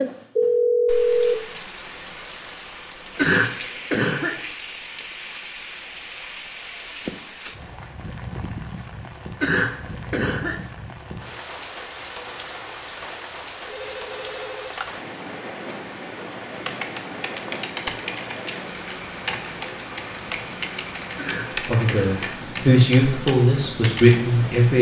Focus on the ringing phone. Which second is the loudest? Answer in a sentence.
The loudest moment of the ringing phone is at 1 second.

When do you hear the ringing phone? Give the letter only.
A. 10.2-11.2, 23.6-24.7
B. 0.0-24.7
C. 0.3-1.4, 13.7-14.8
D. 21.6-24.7
C.